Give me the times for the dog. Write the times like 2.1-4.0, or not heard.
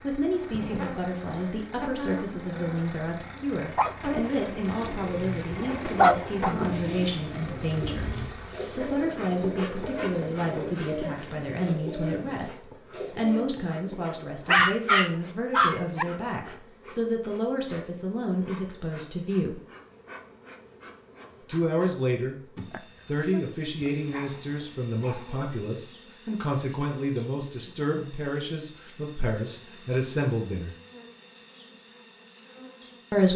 3.8-6.5, 14.4-16.1, 22.7-25.4.